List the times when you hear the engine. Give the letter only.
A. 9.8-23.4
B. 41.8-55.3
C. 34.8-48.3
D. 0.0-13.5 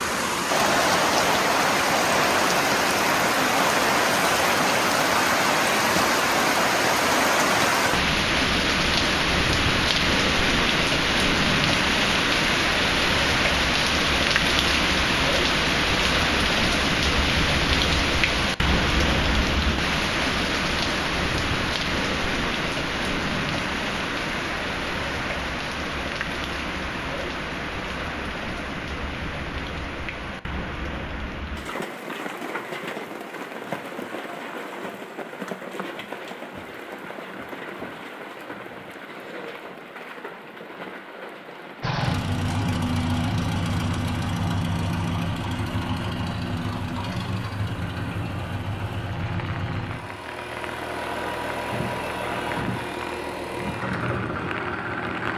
B.